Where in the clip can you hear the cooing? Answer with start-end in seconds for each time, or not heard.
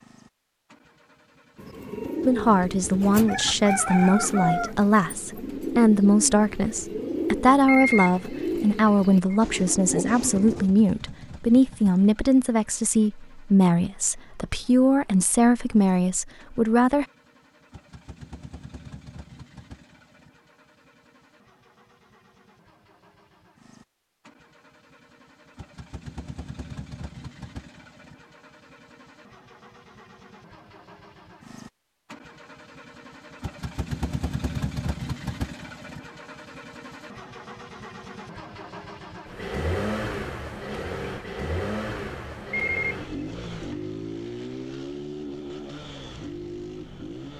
1.6-10.7.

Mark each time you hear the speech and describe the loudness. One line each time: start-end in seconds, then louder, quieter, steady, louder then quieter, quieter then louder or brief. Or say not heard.
2.2-17.1 steady.